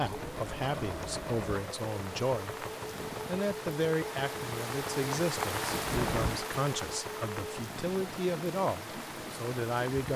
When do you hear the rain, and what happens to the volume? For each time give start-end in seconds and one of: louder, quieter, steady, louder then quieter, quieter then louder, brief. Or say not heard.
0.0-10.1 louder then quieter.